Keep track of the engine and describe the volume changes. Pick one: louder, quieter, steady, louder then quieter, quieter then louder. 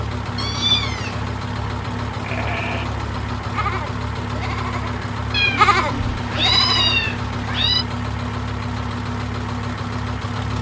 steady.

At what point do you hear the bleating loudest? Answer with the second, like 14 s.
6 s.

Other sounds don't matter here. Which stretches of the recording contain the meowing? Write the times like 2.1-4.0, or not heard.
0.3-1.3, 5.3-7.8.